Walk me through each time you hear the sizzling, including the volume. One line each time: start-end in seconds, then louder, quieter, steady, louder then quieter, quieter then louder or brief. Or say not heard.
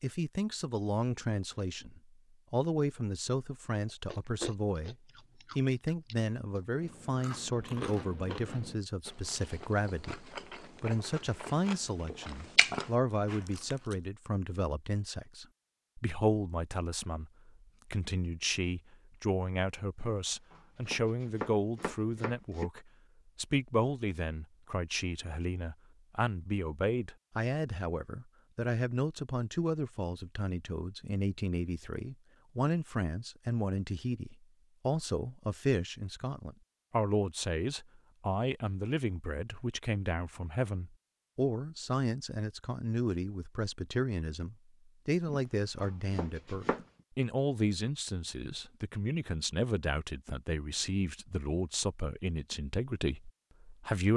not heard.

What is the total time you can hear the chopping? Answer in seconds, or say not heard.
4 s.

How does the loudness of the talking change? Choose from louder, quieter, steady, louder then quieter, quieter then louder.
steady.